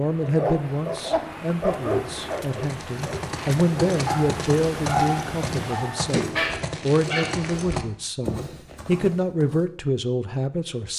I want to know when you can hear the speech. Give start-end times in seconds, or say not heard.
0.0-10.9.